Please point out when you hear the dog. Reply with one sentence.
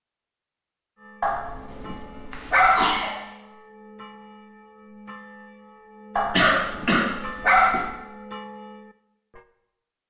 The dog can be heard from 1.2 to 3.0 s and from 6.2 to 7.9 s.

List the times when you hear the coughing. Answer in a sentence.
The coughing can be heard from 2.3 to 3.1 s and from 6.3 to 7.0 s.